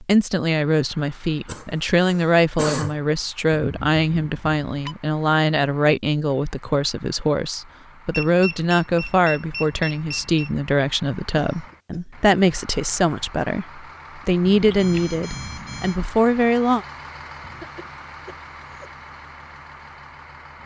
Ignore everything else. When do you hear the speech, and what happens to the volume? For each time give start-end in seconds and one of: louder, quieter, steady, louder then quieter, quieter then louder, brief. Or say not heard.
0.0-16.9 steady.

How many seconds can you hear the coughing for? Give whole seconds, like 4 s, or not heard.
4 s.